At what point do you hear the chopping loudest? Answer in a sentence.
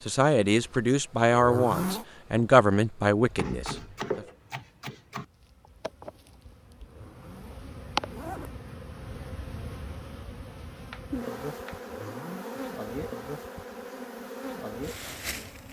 The loudest moment of the chopping is at 4 seconds.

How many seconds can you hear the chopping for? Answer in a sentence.
You can hear the chopping for 3 seconds altogether.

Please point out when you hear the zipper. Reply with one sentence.
You can hear the zipper from 1.3 to 2.0 s, from 6.8 to 8.5 s and from 11.8 to 12.7 s.